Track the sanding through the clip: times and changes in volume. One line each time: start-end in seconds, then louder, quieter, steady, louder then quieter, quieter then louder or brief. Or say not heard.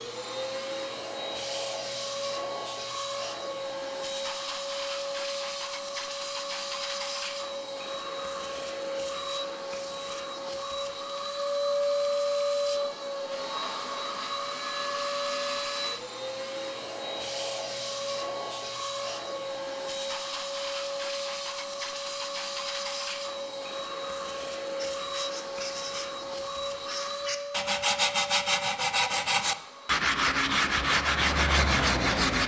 24.8-32.4 louder.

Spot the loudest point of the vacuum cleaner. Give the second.
12 s.